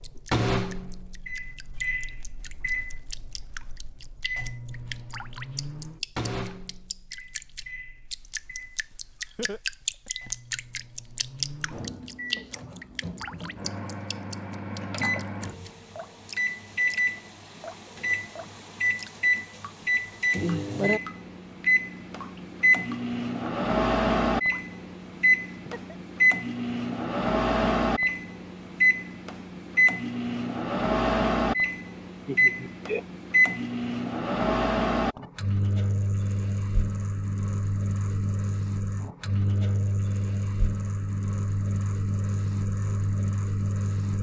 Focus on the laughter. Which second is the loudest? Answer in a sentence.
The loudest moment of the laughter is at 33 seconds.